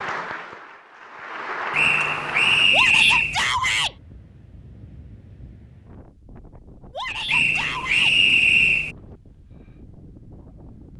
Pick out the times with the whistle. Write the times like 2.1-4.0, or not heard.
1.7-3.4, 7.2-8.9.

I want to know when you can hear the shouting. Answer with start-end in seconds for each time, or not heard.
2.7-4.0, 6.9-8.2.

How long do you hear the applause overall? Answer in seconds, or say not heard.
3 s.